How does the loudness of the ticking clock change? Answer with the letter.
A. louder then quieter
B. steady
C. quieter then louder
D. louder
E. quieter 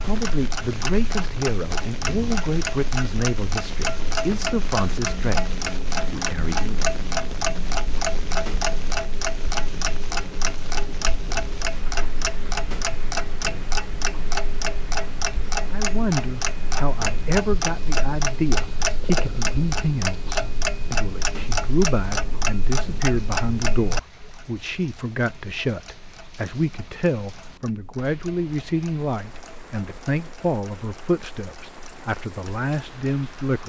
E.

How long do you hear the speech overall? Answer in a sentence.
You can hear the speech for 25 seconds altogether.